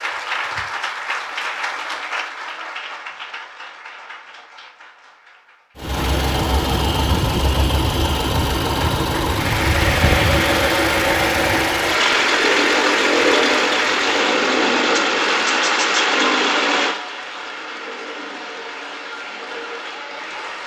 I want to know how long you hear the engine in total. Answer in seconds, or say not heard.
15 s.